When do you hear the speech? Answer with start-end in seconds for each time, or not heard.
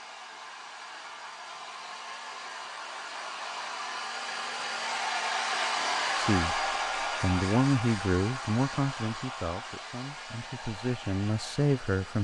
6.2-12.2.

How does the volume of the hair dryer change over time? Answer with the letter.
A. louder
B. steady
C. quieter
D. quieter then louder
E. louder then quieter
E.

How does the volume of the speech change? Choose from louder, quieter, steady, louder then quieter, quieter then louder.
quieter then louder.